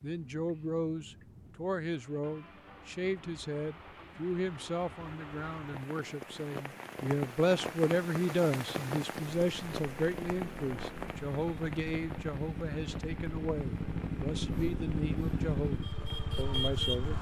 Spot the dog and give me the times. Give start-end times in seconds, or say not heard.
not heard.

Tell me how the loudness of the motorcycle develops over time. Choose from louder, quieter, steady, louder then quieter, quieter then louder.
louder.